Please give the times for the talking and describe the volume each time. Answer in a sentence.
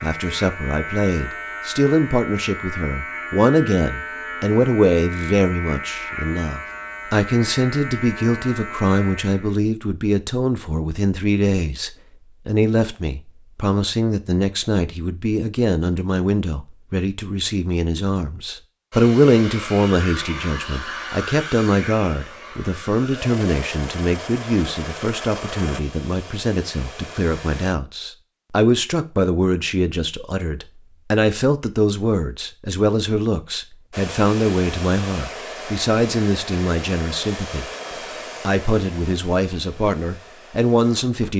The talking can be heard from 0.0 to 37.6 s, at a steady volume; and briefly from 38.5 to 41.3 s.